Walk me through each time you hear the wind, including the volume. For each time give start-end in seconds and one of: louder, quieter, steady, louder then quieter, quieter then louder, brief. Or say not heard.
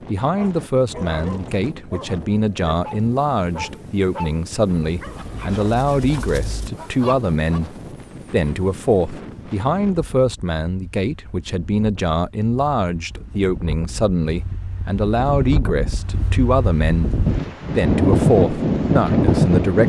0.0-19.8 louder.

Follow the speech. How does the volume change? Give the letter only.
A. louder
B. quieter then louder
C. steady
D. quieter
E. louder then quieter
C.